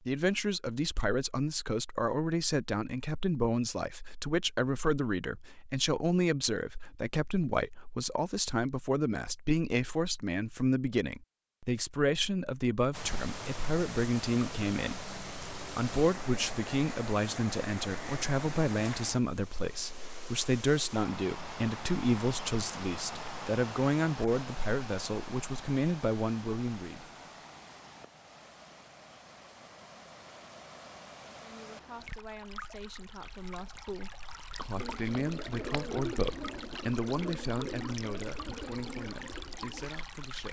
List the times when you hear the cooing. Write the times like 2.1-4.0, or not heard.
34.8-39.9.